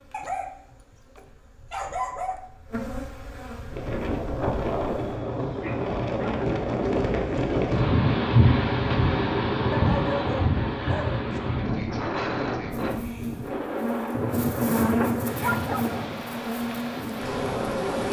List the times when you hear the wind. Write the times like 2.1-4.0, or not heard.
3.7-18.0.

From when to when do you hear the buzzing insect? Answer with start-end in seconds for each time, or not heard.
0.0-5.2, 12.7-18.0.